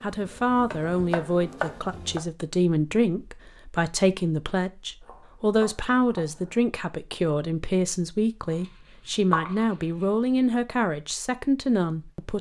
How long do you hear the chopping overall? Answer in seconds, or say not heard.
5 s.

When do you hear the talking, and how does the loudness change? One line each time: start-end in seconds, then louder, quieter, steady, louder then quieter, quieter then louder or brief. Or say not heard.
0.0-12.3 steady.